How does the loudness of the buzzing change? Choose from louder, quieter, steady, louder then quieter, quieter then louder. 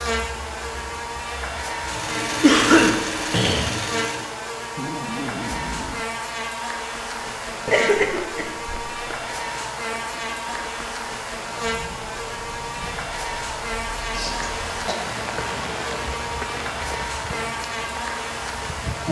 steady.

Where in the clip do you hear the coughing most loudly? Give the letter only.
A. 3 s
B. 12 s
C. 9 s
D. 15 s
A.